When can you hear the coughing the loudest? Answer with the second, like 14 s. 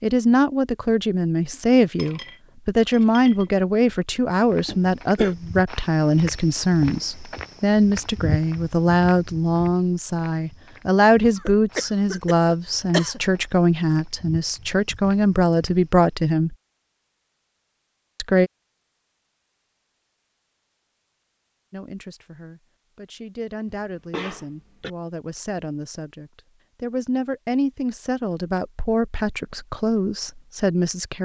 13 s.